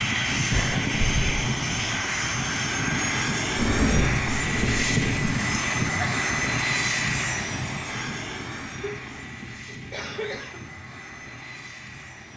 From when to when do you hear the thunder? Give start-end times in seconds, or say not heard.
3.5-5.2.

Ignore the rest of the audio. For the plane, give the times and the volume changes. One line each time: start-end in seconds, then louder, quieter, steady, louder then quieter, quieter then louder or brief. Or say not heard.
0.0-12.3 quieter.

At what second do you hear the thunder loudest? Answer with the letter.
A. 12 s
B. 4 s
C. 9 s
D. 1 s
B.